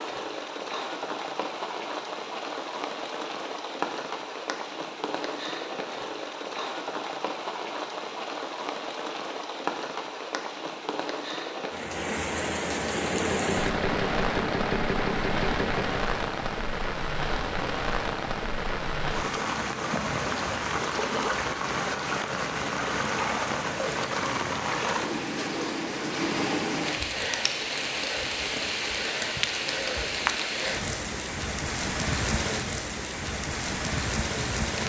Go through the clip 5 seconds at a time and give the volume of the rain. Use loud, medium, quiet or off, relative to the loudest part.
medium, medium, loud, loud, loud, loud, loud.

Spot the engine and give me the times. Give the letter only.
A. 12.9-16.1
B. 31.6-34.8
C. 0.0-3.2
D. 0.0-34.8
A.